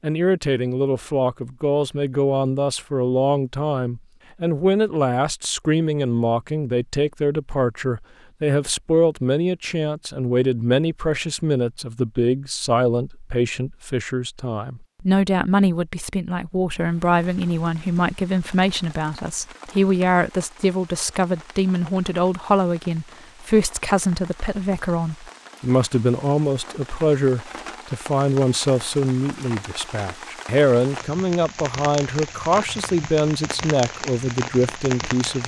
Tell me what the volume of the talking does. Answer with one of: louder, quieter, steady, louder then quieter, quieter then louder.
steady.